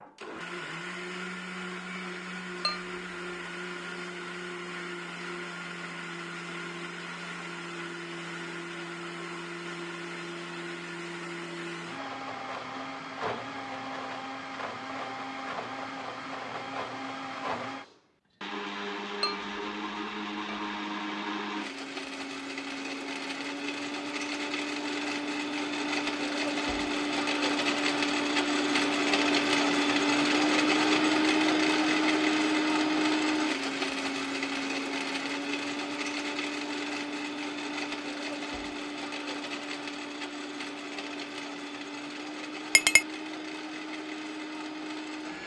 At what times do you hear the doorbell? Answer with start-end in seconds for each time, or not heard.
not heard.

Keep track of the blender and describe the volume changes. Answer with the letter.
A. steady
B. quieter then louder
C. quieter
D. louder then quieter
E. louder
D.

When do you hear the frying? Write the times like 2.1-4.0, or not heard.
not heard.